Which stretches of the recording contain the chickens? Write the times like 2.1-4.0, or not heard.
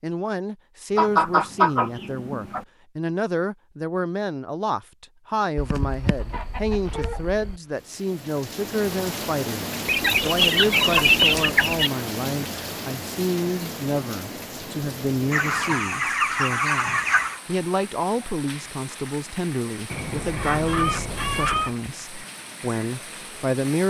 0.9-2.6, 5.5-7.5, 9.8-11.9, 15.3-17.4, 19.9-21.8.